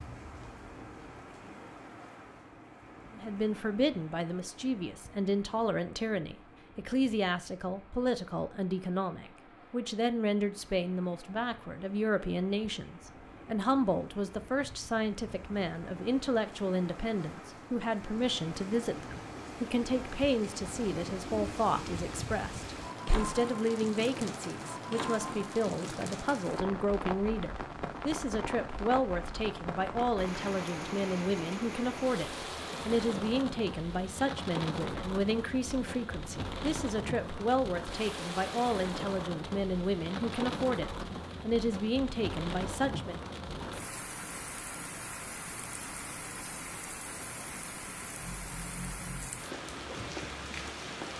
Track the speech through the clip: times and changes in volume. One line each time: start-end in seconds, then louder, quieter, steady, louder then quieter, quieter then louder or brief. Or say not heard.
3.1-43.2 steady.